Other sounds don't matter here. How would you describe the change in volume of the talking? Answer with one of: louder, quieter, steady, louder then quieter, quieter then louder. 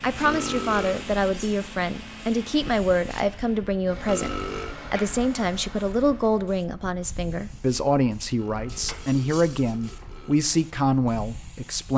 steady.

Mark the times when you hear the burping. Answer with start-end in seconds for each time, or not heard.
0.2-1.1, 4.0-4.8, 8.3-10.4.